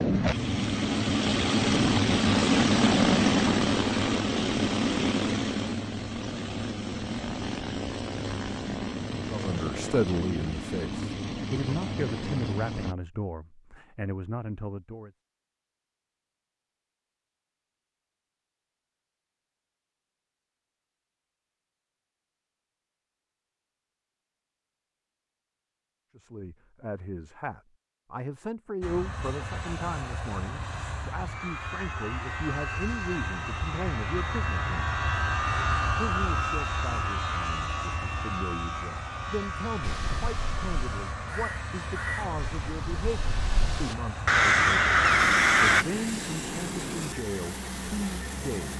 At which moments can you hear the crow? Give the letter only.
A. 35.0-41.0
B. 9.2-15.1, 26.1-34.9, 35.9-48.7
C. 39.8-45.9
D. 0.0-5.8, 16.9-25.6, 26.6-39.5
C.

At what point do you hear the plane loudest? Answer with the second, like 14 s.
3 s.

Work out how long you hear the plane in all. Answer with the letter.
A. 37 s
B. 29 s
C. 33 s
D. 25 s
C.